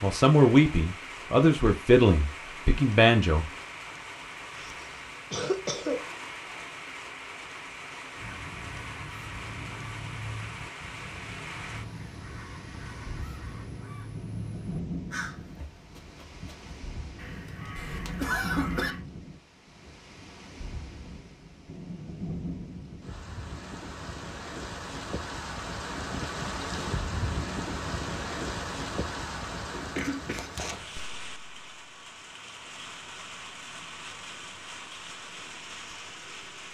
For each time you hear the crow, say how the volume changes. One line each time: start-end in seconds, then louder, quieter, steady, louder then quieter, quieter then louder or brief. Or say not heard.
8.2-19.1 steady.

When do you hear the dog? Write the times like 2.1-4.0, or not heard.
not heard.